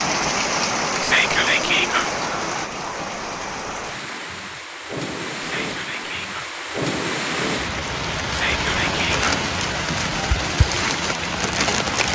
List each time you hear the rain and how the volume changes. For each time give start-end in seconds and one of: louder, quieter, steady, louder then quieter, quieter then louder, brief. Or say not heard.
0.0-12.0 quieter then louder.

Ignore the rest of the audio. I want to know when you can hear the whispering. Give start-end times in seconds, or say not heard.
1.0-2.1, 5.4-6.5, 8.3-9.2.